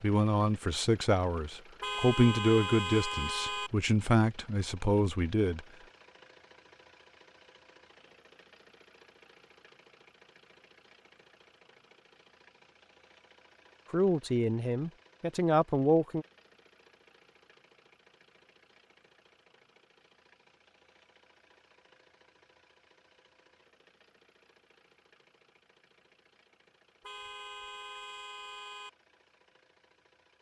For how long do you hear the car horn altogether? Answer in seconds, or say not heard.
4 s.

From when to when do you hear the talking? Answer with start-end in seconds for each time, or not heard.
0.0-5.7, 13.9-16.2.